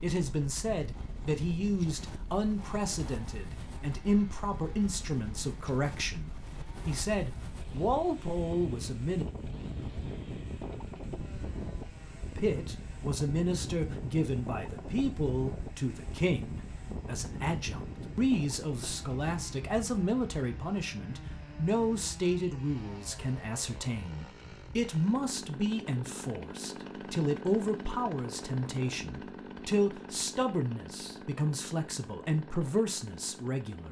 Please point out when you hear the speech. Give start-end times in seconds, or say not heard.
0.0-9.2, 12.2-33.8.